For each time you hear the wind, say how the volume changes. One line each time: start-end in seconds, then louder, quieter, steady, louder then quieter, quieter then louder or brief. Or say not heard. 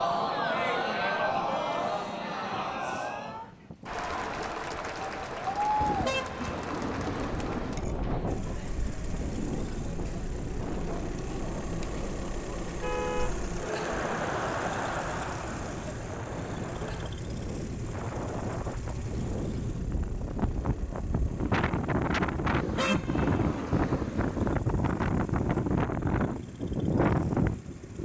0.0-28.0 louder.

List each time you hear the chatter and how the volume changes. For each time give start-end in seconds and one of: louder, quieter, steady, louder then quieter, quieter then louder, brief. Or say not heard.
0.0-17.1 quieter then louder.